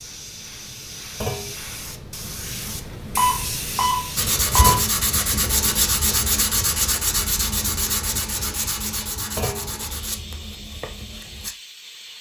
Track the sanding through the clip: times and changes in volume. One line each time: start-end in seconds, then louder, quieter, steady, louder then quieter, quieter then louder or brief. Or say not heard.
4.2-11.6 quieter.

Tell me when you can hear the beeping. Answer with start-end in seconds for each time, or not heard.
3.1-4.8.